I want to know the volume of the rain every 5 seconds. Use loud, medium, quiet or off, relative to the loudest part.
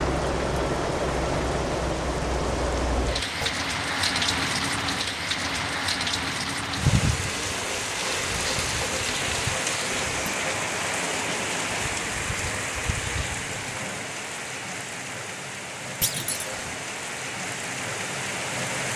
loud, loud, loud, medium.